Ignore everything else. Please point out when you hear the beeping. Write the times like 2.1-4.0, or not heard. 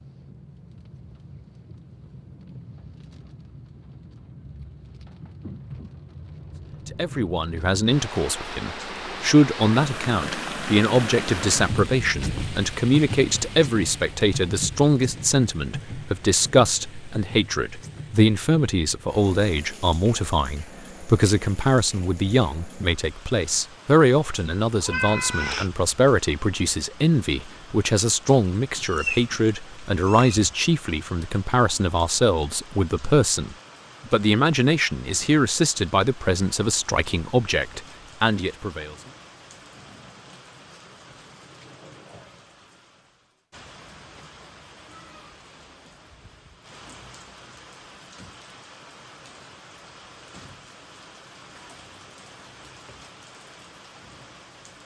not heard.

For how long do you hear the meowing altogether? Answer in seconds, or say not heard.
3 s.